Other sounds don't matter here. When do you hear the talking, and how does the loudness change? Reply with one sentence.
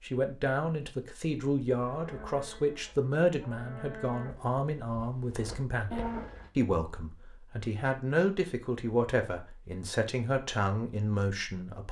The talking can be heard from 0.0 to 11.8 s, at a steady volume.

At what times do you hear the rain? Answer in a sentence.
You can't hear the rain here.